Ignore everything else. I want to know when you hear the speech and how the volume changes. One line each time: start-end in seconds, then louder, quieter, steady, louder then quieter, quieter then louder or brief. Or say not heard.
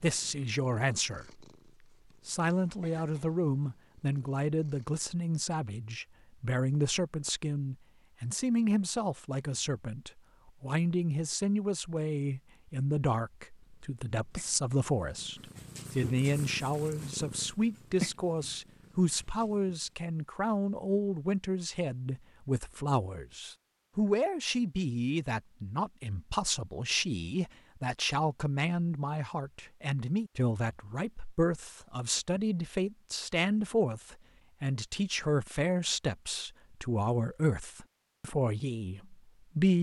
0.0-1.4 brief
2.2-39.7 steady.